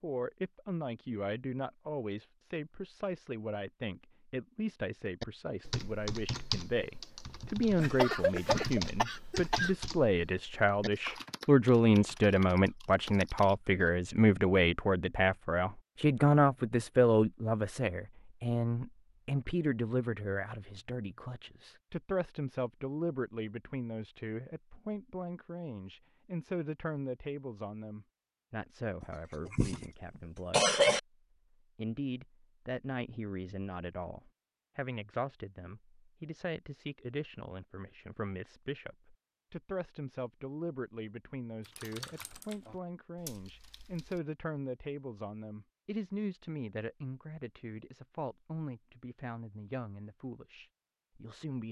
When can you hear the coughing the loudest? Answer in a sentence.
The loudest moment of the coughing is at 31 seconds.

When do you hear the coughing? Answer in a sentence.
You can hear the coughing from 7.8 to 9.7 s and from 29.0 to 31.0 s.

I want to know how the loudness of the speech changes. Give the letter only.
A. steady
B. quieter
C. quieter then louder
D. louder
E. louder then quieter
E.